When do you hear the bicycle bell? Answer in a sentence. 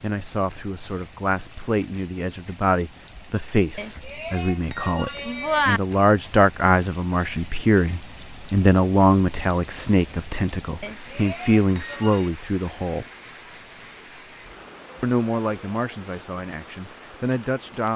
The bicycle bell can be heard from 3.8 to 5.8 s and from 10.8 to 12.3 s.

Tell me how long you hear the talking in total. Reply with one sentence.
You can hear the talking for 16 seconds altogether.